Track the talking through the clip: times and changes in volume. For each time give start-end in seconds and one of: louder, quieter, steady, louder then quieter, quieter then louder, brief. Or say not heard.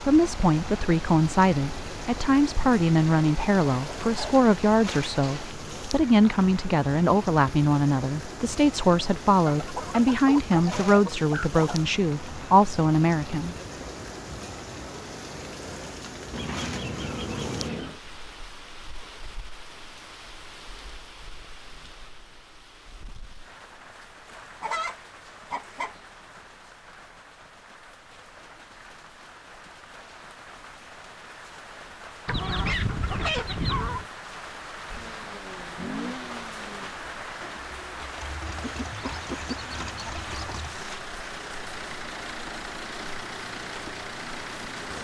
0.0-13.8 steady.